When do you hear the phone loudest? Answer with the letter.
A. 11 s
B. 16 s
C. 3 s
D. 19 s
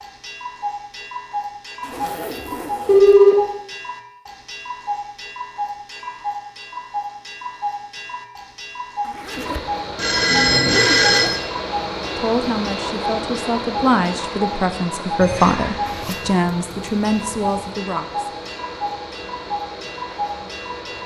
C.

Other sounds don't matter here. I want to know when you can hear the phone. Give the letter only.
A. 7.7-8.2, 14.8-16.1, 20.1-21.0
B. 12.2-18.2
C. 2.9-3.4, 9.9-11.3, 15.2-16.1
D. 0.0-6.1
C.